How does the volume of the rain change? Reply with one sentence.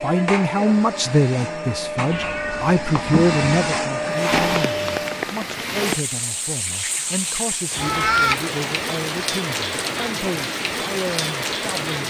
The loudness of the rain stays about the same.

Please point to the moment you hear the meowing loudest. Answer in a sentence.
The loudest moment of the meowing is at 8 seconds.